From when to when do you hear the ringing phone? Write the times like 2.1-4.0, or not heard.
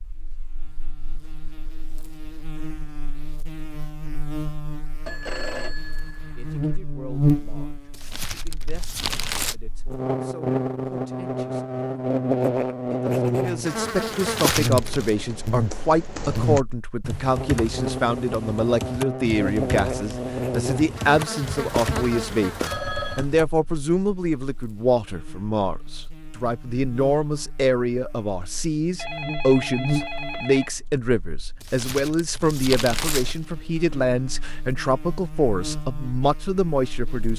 5.0-6.8, 22.6-23.2, 28.9-30.8.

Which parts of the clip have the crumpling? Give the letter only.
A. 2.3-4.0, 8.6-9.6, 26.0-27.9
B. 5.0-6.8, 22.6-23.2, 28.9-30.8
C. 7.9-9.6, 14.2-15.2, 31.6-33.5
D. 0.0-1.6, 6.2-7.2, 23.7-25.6
C.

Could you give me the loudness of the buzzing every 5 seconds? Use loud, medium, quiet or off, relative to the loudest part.
quiet, loud, loud, loud, medium, medium, quiet, quiet.